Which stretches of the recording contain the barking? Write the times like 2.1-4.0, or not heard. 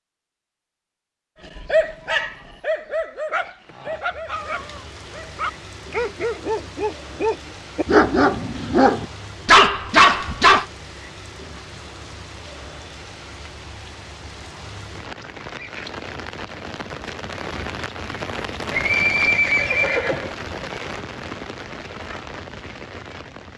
1.6-10.7.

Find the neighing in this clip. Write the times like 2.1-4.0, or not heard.
18.7-20.4.